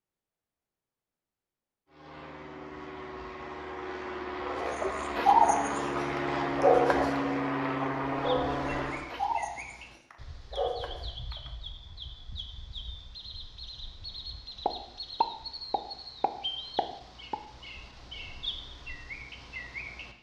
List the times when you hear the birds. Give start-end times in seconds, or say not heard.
8.3-20.1.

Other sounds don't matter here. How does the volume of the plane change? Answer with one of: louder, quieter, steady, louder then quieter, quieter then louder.
louder.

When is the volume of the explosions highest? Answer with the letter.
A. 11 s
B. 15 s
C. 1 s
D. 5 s
B.